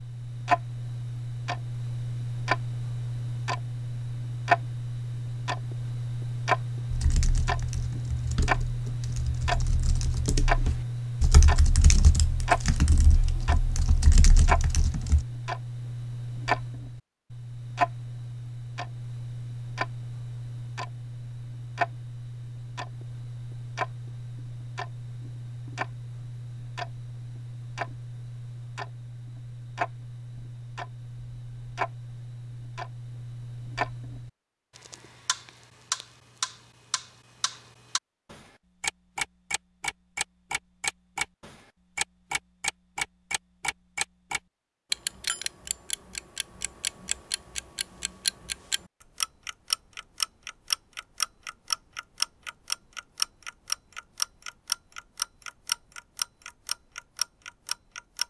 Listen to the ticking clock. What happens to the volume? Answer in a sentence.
The volume of the ticking clock goes down, then up.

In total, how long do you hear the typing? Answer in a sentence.
The typing can be heard for 8 seconds in total.